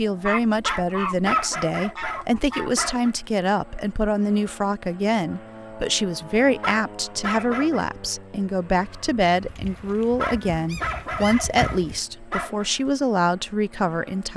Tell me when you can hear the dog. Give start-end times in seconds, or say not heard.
0.6-3.1, 6.6-7.8, 10.2-12.7.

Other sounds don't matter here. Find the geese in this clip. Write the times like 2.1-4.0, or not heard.
0.2-2.8, 9.4-12.0.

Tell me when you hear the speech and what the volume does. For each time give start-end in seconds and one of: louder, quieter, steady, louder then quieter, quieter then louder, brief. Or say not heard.
0.0-14.3 steady.